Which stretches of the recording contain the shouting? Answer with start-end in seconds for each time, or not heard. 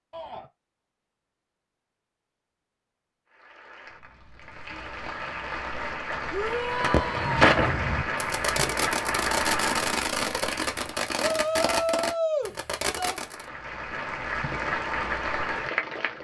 0.1-0.5, 6.3-7.5, 11.2-13.2.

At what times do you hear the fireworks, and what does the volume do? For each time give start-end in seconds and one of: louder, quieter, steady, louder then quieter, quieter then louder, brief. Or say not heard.
6.8-13.4 quieter.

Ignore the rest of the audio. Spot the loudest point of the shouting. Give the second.
12 s.